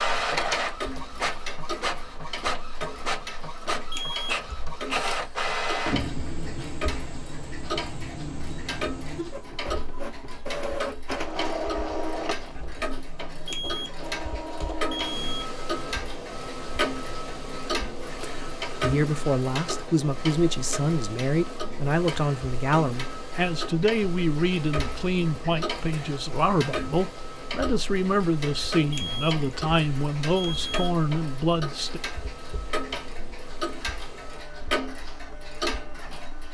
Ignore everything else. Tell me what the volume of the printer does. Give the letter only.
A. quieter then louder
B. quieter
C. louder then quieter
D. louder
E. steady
B.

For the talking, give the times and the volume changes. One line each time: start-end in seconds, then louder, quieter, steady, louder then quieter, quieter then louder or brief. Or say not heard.
18.8-32.0 steady.